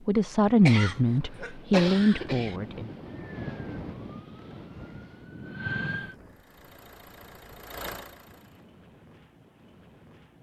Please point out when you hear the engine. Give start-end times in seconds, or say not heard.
6.3-8.7.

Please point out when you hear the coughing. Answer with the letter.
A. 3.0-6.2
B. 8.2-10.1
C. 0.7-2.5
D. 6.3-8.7
C.